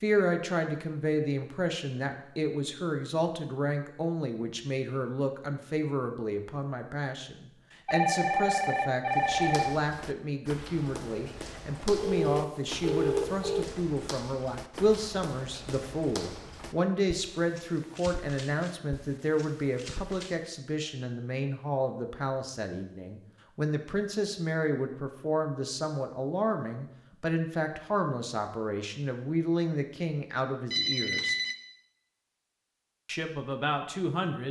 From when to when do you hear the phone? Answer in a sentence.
The phone can be heard from 7.8 to 9.8 s, from 11.9 to 13.7 s and from 30.7 to 31.6 s.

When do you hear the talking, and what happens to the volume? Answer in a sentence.
You can hear the talking from 0.0 to 31.4 s, at a steady volume; and briefly from 33.0 to 34.4 s.